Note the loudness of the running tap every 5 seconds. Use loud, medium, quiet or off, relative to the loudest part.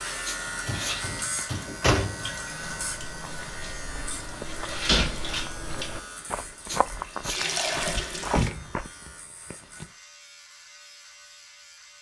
medium, loud, off.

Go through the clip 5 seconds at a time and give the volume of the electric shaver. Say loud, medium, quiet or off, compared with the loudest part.
loud, medium, quiet.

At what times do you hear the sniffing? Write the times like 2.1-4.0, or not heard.
0.2-1.4, 6.7-7.8.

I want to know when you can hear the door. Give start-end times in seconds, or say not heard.
0.7-2.3, 4.8-5.4, 8.2-9.8.